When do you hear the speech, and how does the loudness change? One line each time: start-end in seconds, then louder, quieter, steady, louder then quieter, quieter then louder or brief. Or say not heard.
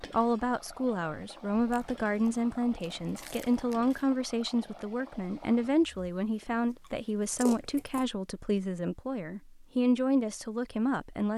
0.0-11.3 steady.